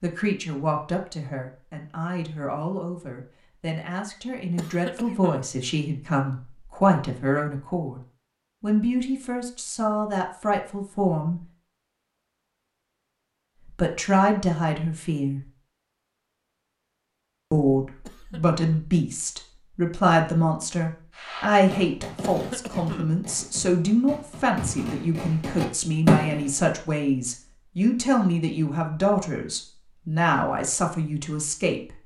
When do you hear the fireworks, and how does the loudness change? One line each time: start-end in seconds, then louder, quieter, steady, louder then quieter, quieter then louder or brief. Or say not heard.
21.1-26.5 quieter then louder.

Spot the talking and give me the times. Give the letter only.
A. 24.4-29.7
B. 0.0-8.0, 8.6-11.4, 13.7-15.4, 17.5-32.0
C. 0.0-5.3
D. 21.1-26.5
B.